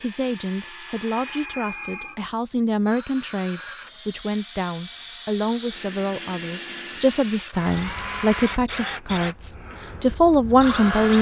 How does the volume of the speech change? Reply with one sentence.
The volume of the speech goes up.